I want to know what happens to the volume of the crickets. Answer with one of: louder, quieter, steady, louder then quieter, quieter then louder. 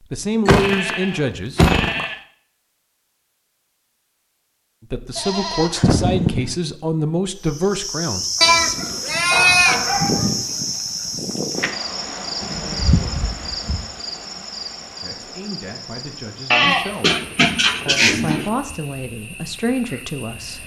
quieter.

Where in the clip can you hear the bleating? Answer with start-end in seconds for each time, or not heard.
0.5-2.2, 5.2-6.5, 8.4-9.8, 12.4-13.8, 16.5-18.5.